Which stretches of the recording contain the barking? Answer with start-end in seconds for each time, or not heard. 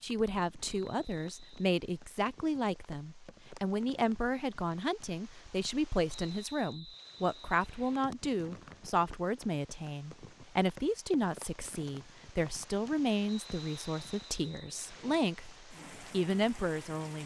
not heard.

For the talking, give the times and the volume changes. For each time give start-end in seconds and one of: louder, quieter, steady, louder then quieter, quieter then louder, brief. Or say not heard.
0.0-17.2 steady.